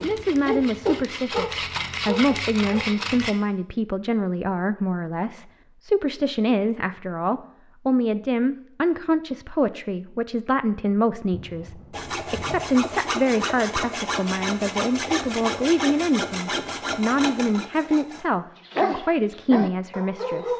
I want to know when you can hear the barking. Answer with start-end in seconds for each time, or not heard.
0.0-3.0, 18.7-20.5.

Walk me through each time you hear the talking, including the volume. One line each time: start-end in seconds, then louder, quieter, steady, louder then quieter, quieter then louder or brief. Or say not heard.
0.0-20.5 steady.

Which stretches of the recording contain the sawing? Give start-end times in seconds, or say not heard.
0.0-3.4, 11.9-18.2.